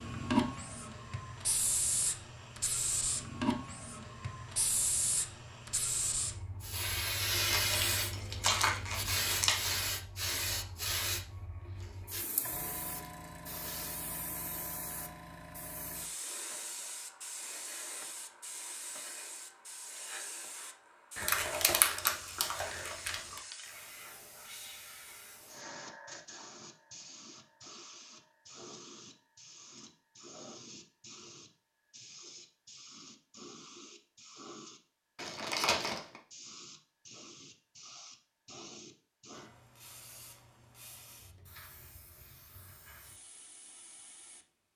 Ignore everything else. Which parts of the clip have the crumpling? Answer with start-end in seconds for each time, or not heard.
7.3-9.8, 21.1-23.2, 35.1-36.2.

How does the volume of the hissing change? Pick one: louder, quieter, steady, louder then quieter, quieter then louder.
quieter.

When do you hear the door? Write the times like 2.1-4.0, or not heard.
not heard.